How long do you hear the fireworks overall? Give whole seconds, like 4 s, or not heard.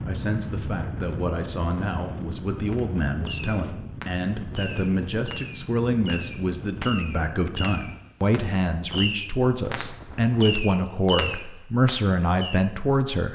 10 s.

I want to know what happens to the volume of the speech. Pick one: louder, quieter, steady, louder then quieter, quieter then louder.
louder.